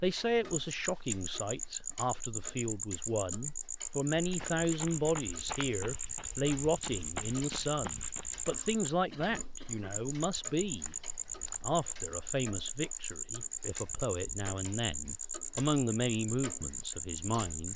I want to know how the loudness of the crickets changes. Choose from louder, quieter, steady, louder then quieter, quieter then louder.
steady.